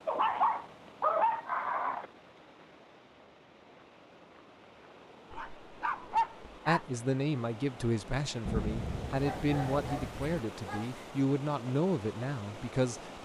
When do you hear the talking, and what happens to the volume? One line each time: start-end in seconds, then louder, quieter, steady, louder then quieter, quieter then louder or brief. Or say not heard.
6.7-13.2 steady.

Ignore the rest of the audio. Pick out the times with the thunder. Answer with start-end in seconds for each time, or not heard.
8.4-10.4.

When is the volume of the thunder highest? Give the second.
9 s.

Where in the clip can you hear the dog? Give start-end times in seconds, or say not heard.
0.1-2.0, 5.3-6.8, 9.2-11.1.